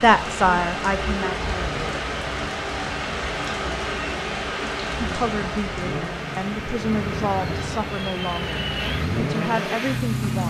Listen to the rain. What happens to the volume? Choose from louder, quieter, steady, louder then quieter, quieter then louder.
quieter.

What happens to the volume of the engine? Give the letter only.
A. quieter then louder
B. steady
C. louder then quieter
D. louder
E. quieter
D.